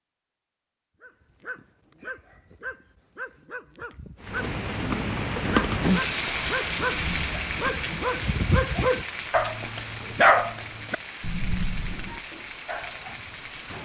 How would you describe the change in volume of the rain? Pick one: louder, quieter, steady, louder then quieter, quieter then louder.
quieter.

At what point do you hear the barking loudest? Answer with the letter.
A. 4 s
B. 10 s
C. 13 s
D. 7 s
B.